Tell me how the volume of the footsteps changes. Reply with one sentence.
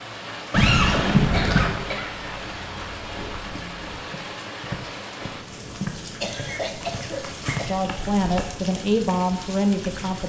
The loudness of the footsteps goes up.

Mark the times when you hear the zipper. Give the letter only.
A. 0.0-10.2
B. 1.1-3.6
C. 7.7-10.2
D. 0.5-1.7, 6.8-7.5
D.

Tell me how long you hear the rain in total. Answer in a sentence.
You can hear the rain for 10 seconds altogether.